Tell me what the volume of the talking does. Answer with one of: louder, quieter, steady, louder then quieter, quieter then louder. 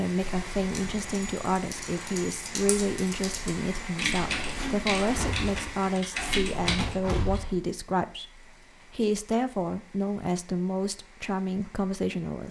steady.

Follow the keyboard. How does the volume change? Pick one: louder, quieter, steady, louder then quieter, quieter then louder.
louder.